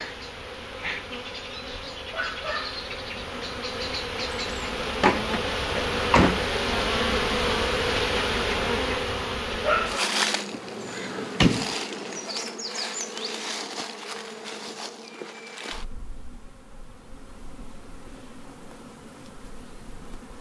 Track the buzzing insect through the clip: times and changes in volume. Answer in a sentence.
You can hear the buzzing insect from 0.0 to 20.3 s, getting louder then quieter.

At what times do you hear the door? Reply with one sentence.
You can hear the door from 5.0 to 6.5 s and from 10.5 to 11.8 s.